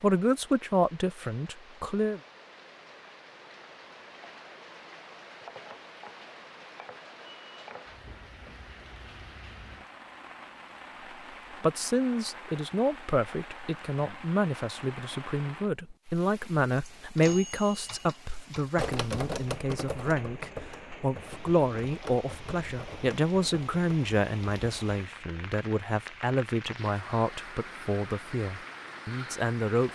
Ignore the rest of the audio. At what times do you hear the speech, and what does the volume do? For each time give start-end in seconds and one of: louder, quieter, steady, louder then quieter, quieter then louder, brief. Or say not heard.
0.0-2.2 brief
11.6-29.9 steady.